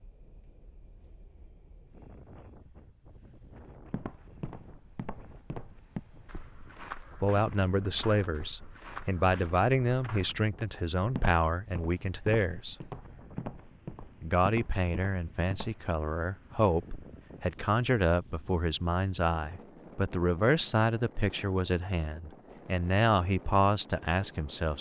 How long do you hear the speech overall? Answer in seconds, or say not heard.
16 s.